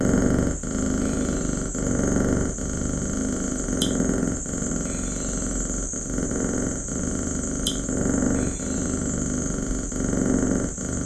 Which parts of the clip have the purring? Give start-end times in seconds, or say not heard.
0.0-11.0.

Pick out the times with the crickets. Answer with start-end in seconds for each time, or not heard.
0.0-11.0.